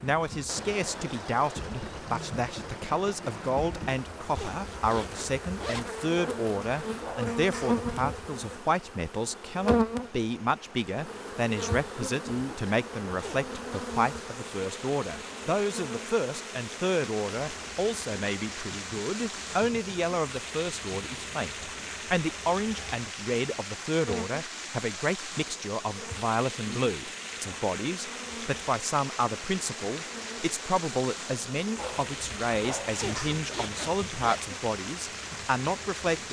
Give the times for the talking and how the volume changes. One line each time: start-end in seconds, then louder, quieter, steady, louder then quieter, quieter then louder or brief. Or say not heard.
0.0-36.2 steady.